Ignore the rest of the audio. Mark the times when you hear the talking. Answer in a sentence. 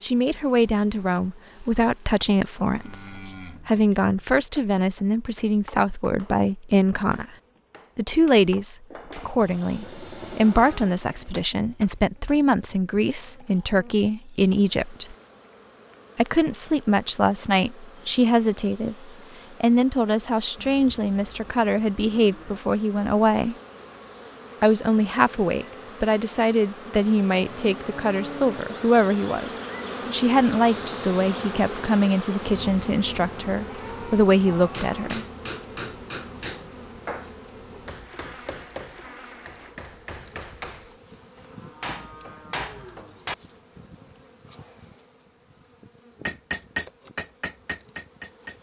The talking can be heard from 0.0 to 7.2 s, from 8.0 to 15.2 s, from 16.1 to 23.6 s and from 24.6 to 35.2 s.